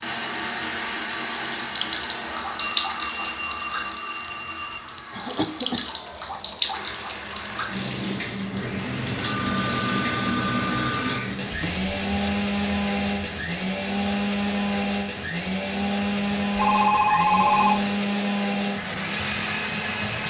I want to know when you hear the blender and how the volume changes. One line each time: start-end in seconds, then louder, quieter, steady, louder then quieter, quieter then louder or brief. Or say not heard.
0.0-20.2 quieter then louder.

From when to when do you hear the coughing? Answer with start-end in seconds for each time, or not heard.
5.1-5.8.